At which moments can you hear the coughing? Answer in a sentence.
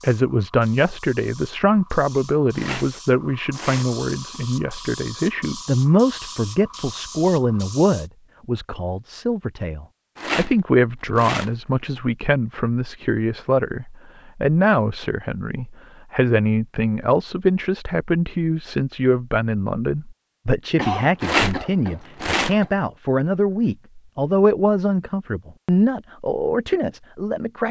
You can hear the coughing from 20.8 to 22.7 s.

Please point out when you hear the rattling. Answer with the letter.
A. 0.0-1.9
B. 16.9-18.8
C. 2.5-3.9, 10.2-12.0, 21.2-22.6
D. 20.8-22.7
C.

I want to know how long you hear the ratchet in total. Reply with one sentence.
You can't hear the ratchet here.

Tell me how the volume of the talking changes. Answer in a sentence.
The loudness of the talking stays about the same.